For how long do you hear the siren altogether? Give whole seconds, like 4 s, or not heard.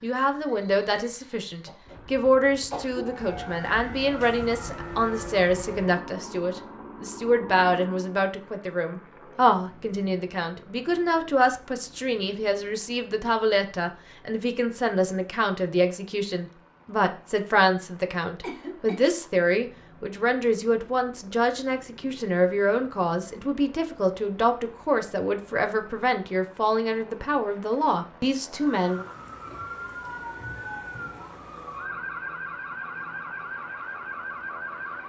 12 s.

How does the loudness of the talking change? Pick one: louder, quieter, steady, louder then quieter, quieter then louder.
steady.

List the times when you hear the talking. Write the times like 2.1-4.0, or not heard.
0.0-29.1.